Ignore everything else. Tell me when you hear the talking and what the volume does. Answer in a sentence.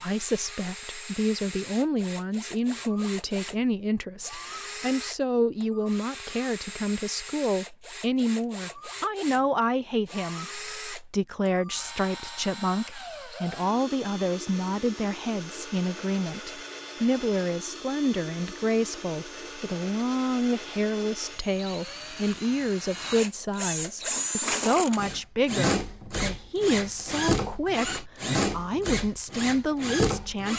The talking can be heard from 0.0 to 30.5 s, at a steady volume.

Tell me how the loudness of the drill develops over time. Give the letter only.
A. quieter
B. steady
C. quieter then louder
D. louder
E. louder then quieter
D.